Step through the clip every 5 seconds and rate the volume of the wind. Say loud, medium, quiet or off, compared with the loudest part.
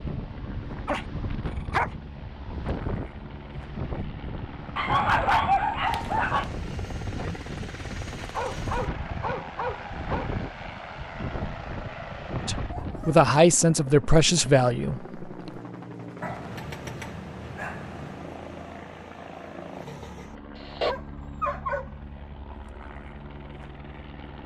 loud, loud, loud, off, off.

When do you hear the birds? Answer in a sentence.
You can't hear the birds here.